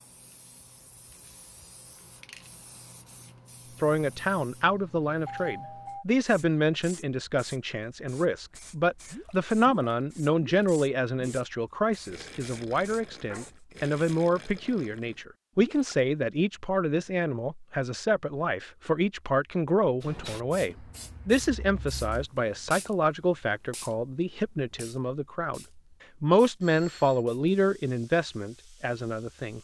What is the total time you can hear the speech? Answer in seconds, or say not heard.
26 s.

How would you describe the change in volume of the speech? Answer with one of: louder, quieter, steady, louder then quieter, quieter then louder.
steady.